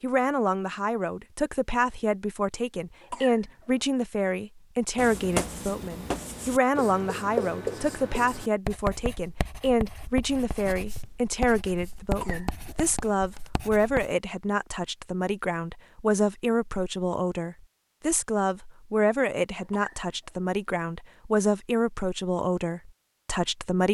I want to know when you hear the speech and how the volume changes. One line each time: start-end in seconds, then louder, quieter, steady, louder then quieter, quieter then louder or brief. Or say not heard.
0.0-23.8 steady.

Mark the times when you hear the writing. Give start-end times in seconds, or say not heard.
5.0-14.2.